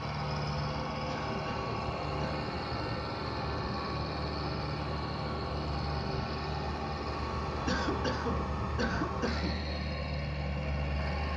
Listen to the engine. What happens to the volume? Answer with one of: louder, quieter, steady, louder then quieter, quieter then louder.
steady.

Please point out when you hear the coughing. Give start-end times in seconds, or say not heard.
1.1-2.4, 7.7-9.6.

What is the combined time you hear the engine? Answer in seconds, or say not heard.
11 s.